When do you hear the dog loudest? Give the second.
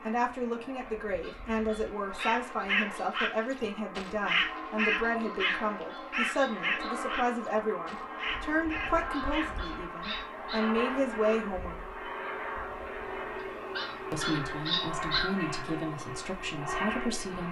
15 s.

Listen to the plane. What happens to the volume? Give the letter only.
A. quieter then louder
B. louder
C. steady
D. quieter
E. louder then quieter
B.